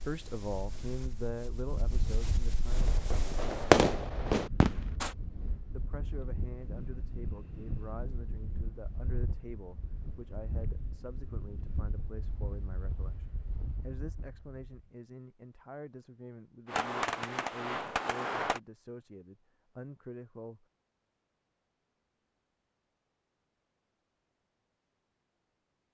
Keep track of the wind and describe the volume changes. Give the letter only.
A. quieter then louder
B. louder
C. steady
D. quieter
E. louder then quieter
C.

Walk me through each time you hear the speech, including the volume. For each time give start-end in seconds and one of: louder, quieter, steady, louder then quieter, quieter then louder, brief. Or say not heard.
0.1-3.0 brief
5.7-20.6 steady.